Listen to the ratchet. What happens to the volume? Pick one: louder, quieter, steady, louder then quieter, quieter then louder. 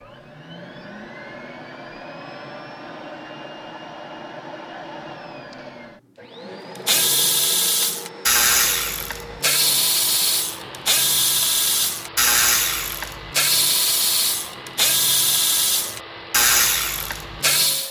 steady.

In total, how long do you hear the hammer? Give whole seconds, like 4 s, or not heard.
not heard.